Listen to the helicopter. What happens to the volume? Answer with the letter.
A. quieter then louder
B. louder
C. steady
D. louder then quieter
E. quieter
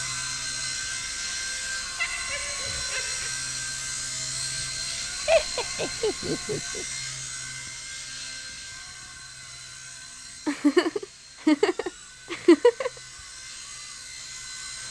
E.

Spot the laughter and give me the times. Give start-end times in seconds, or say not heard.
1.9-3.3, 5.2-6.8, 10.4-12.9.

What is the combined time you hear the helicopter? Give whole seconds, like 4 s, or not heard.
15 s.